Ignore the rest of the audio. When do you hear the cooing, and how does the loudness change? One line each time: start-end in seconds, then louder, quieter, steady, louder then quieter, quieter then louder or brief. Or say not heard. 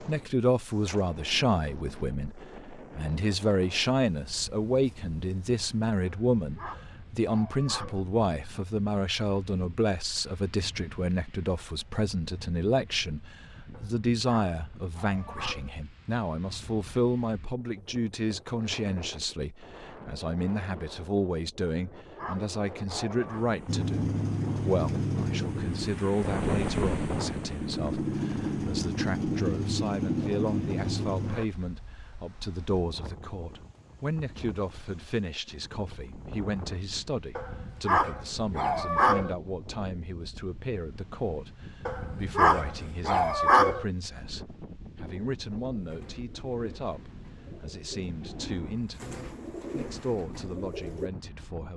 45.8-51.1 louder.